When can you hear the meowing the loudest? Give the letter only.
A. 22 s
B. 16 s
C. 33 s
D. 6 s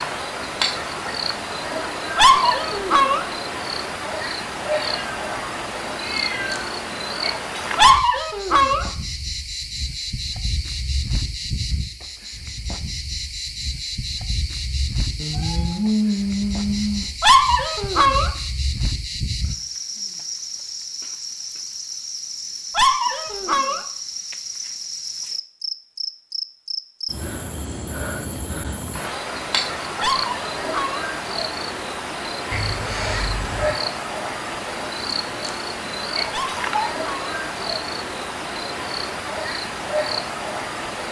B.